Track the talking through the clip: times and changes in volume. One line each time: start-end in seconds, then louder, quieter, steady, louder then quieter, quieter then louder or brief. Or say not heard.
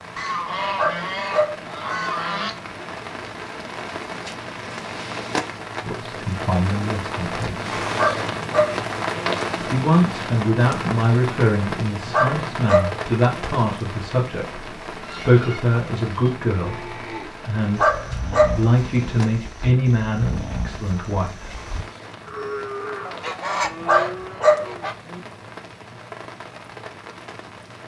5.8-7.7 brief
9.6-21.5 steady.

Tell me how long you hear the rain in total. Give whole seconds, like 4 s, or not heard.
28 s.